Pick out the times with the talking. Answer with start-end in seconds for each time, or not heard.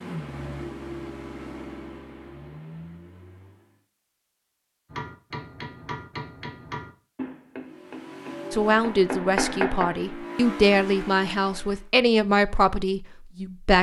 8.5-13.7.